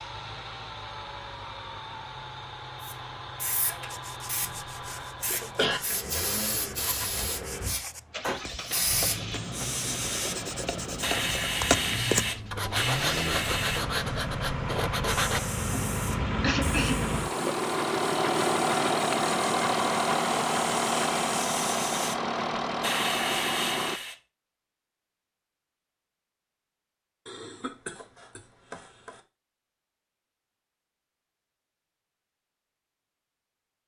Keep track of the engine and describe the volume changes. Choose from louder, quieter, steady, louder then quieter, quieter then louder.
louder.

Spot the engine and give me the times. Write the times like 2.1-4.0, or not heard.
0.0-24.0.